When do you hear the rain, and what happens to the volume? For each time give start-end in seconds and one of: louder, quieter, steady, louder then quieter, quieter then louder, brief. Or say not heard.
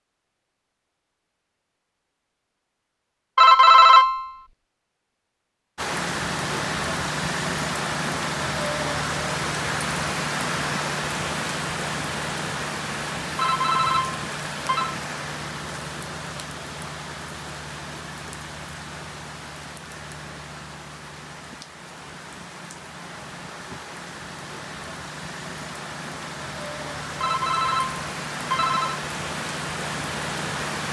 5.8-30.8 quieter then louder.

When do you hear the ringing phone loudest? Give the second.
4 s.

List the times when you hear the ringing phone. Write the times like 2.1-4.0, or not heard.
3.4-4.3, 13.3-14.9, 27.2-29.0.